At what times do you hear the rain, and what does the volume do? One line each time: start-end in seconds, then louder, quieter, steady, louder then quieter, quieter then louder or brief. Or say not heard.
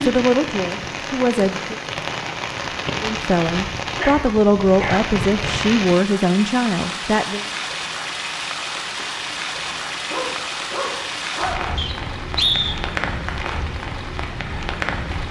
0.0-15.2 steady.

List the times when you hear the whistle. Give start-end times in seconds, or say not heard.
11.8-12.8.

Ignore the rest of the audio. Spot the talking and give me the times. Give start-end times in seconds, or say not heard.
0.0-1.8, 3.0-7.5.